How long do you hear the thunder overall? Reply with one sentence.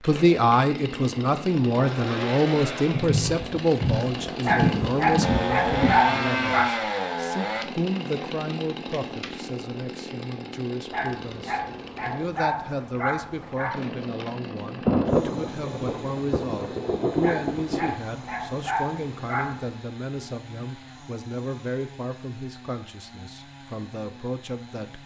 You can hear the thunder for 6 seconds altogether.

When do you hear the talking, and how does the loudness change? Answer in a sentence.
You can hear the talking from 0.0 to 25.0 s, getting quieter.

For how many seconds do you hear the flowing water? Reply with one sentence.
The flowing water can't be heard in this clip.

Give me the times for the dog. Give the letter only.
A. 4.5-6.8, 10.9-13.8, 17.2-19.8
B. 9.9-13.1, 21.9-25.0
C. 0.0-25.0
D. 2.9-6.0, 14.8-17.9
A.